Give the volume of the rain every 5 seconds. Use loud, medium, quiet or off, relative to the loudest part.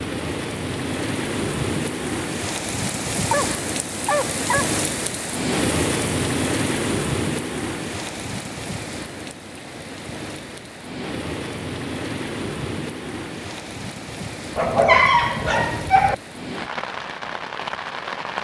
loud, loud, medium, medium.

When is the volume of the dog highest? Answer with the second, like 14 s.
15 s.